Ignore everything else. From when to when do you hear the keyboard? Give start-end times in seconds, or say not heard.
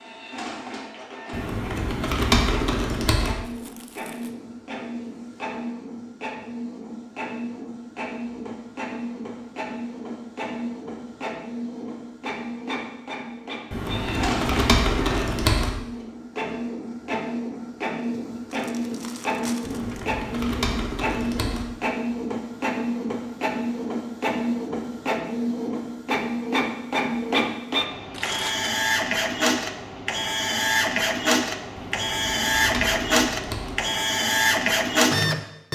1.3-3.4, 13.7-15.7, 19.6-21.6, 31.8-33.8.